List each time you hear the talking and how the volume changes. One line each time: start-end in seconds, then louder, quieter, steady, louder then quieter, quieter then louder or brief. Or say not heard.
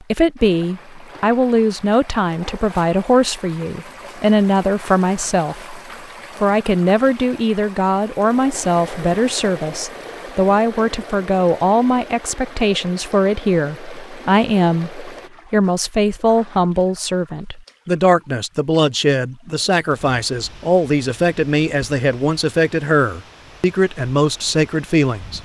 0.1-5.8 steady
6.4-25.3 steady.